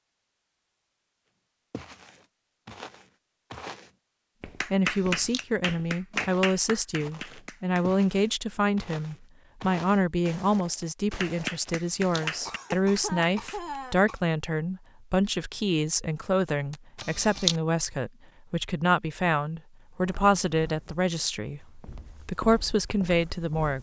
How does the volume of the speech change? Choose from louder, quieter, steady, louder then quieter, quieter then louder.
steady.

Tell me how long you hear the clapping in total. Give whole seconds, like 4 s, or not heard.
6 s.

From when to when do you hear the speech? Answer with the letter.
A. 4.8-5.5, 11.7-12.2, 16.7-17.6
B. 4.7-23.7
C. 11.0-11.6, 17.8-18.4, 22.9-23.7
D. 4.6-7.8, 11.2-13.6
B.